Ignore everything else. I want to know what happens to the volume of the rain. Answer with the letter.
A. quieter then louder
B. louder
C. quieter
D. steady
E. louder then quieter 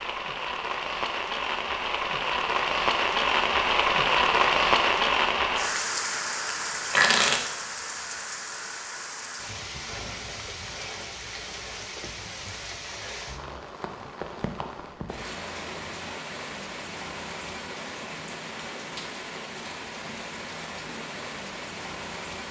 C.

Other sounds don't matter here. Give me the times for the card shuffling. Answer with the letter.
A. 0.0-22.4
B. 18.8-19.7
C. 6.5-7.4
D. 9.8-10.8
C.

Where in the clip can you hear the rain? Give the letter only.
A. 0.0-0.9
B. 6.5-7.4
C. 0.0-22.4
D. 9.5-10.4
C.